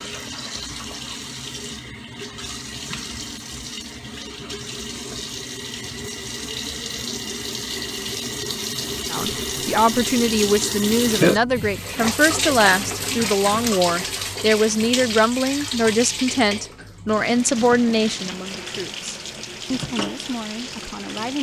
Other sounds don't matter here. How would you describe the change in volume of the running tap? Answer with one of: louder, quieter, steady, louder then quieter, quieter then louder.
louder then quieter.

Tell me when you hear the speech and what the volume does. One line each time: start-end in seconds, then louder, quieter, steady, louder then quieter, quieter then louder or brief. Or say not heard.
9.1-21.3 quieter.